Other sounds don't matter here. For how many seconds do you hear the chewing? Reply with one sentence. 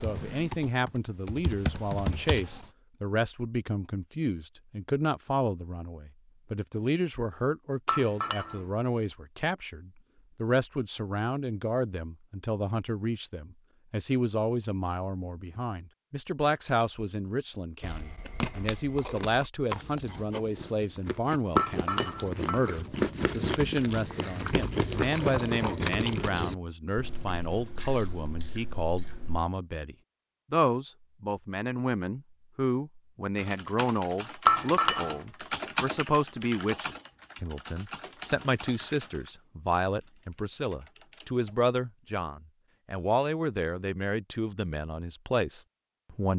The chewing can be heard for 12 seconds in total.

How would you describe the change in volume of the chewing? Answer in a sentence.
The volume of the chewing goes up, then down.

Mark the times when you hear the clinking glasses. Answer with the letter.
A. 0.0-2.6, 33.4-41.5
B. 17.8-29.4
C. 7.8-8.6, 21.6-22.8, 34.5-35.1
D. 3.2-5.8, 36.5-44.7
C.